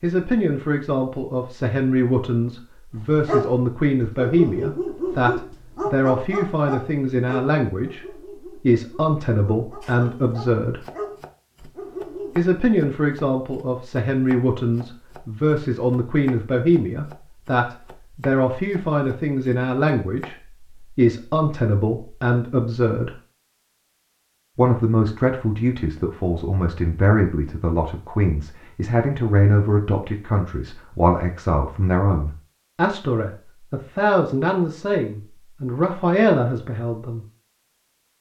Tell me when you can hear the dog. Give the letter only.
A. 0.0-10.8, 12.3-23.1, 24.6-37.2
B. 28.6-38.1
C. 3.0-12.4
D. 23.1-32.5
C.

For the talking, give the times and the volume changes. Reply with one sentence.
The talking can be heard from 0.0 to 10.8 s, at a steady volume; from 12.3 to 23.1 s, at a steady volume; and from 24.6 to 37.2 s, at a steady volume.